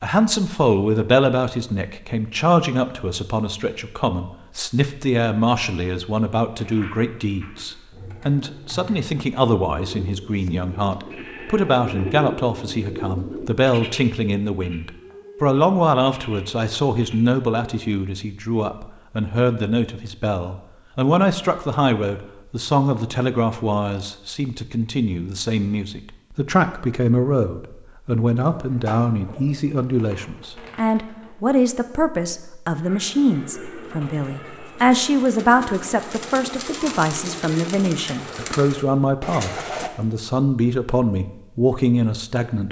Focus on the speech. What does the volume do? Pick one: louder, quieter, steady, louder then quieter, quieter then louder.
steady.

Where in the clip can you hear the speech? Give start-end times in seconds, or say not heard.
0.0-42.6.